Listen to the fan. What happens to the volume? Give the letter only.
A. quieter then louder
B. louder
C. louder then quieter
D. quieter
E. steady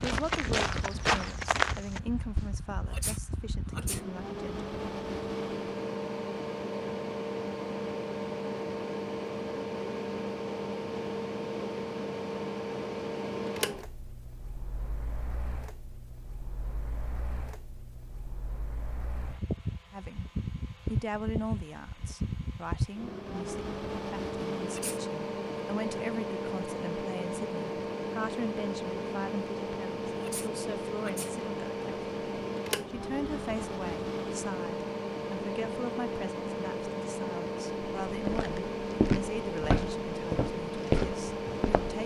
E.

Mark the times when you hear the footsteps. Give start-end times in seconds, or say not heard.
0.0-2.5, 38.0-42.0.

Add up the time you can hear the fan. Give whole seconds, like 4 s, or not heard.
42 s.